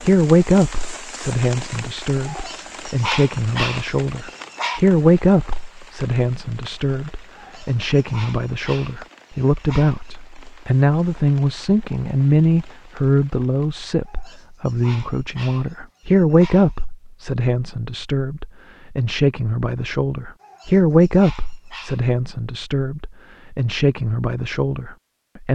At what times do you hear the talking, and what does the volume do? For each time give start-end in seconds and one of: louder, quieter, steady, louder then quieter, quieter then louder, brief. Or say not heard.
0.0-25.4 steady.